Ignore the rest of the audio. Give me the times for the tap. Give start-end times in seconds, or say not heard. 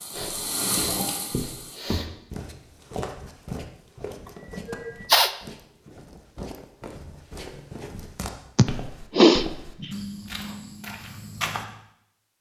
0.0-1.9.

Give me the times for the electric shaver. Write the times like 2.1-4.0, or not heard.
not heard.